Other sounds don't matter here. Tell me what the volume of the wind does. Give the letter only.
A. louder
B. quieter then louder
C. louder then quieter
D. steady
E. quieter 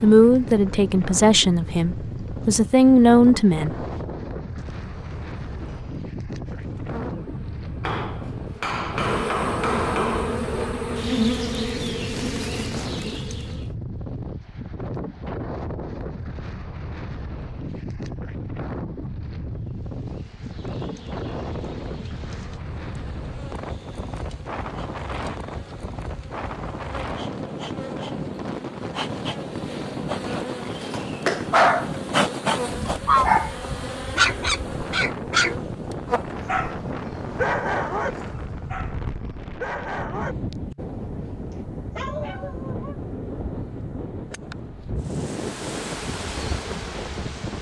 D.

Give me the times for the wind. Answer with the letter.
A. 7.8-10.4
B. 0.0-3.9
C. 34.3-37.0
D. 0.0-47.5
D.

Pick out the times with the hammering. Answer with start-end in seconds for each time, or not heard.
7.8-10.4.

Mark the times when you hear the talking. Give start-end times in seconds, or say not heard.
0.0-3.9.